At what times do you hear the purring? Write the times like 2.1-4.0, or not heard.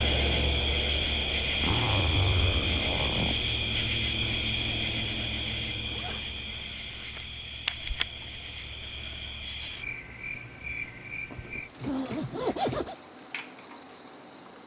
not heard.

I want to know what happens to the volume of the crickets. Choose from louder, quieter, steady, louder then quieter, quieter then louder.
quieter.